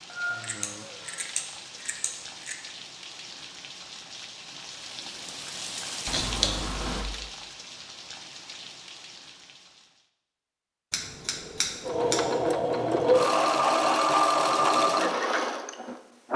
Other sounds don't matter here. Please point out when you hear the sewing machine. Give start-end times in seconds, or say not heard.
11.8-16.3.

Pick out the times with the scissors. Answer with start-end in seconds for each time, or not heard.
0.1-2.5, 6.0-7.0, 10.9-12.2.